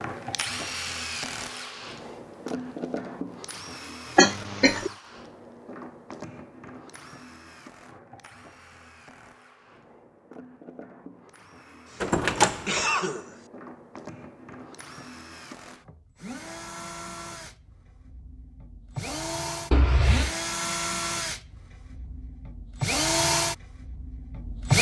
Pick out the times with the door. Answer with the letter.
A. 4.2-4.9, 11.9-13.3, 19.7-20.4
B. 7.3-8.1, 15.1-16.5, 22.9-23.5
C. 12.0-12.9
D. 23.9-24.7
C.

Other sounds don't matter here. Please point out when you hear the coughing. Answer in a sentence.
You can hear the coughing from 4.2 to 4.9 s, from 11.9 to 13.3 s and from 19.7 to 20.4 s.